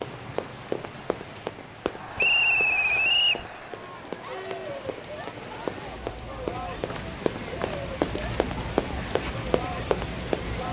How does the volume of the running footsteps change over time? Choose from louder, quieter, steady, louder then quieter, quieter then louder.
quieter then louder.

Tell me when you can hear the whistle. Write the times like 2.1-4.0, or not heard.
2.1-3.5, 6.9-7.8.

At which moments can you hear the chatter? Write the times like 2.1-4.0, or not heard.
1.8-10.6.